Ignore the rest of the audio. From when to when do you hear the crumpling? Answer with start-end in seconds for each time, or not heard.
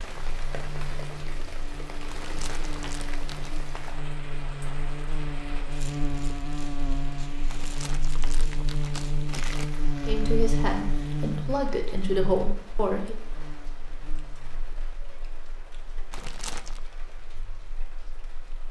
2.0-3.6, 7.5-9.7, 16.1-16.9.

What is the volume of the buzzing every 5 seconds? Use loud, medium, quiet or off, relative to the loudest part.
medium, loud, loud, quiet.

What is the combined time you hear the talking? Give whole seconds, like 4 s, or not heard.
3 s.